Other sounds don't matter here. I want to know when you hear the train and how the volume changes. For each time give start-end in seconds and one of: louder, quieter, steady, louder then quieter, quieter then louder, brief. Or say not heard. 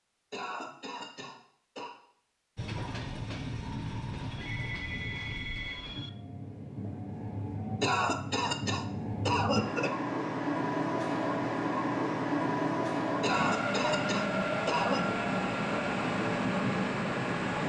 2.5-17.6 louder.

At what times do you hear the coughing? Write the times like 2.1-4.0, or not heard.
0.3-1.9, 7.8-9.9, 13.2-15.1.